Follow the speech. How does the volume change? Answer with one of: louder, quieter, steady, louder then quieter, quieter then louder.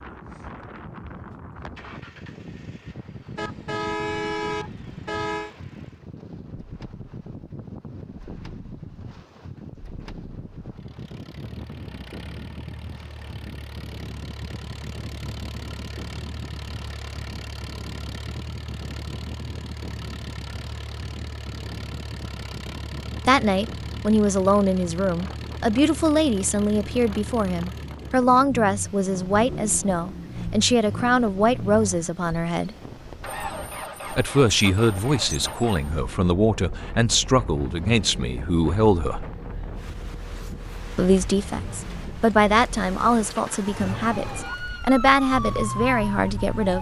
steady.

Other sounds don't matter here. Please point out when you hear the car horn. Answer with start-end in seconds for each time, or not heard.
3.4-5.5.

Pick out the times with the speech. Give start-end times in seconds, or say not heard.
23.2-32.8, 34.1-39.2, 41.0-46.7.